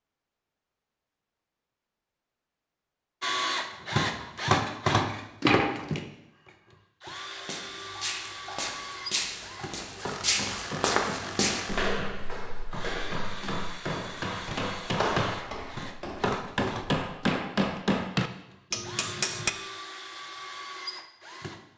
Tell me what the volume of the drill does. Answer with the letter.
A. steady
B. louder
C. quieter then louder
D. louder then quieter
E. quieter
E.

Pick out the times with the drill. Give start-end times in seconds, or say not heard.
3.2-21.7.